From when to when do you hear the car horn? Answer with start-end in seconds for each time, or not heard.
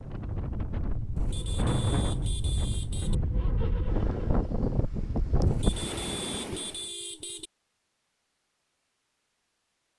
1.1-3.1, 5.5-7.5.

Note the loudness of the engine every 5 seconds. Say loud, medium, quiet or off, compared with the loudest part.
loud, off.